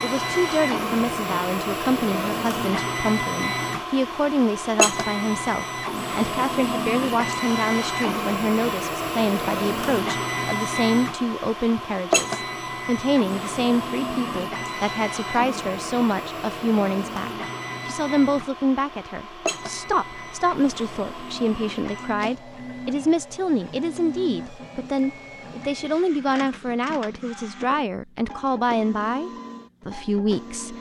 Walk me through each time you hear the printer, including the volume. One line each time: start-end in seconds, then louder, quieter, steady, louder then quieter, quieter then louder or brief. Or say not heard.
0.0-30.7 quieter.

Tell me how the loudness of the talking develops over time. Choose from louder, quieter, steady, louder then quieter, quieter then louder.
steady.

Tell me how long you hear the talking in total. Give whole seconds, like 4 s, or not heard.
31 s.